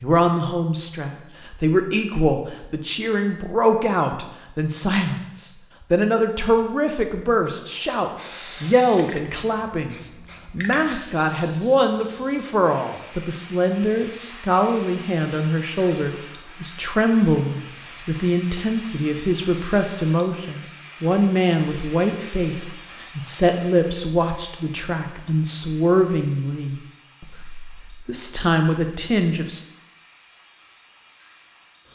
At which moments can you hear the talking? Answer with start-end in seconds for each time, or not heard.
0.0-29.6.